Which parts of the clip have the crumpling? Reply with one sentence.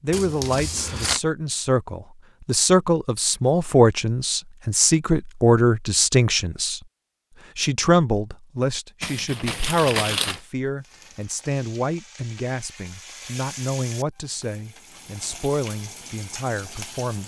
You can hear the crumpling from 0.1 to 1.2 s and from 9.0 to 10.4 s.